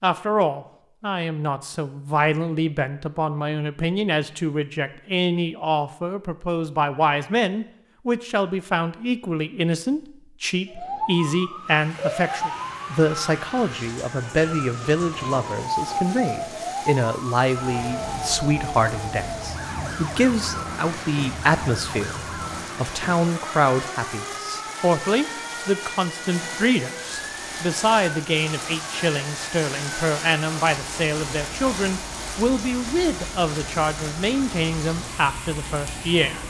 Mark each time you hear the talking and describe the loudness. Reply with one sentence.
You can hear the talking from 0.0 to 36.4 s, at a steady volume.